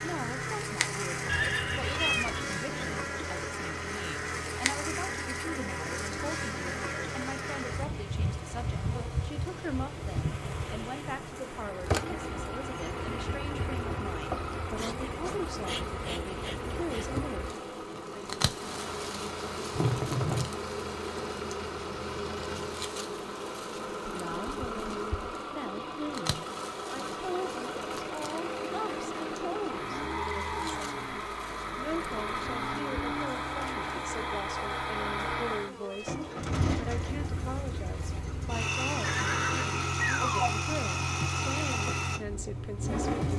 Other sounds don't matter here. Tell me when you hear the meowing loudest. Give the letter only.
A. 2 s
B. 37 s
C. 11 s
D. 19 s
A.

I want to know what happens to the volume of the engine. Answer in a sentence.
The volume of the engine goes up.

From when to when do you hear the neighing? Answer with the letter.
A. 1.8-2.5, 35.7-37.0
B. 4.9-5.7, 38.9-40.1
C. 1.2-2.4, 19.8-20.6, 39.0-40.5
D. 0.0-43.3
C.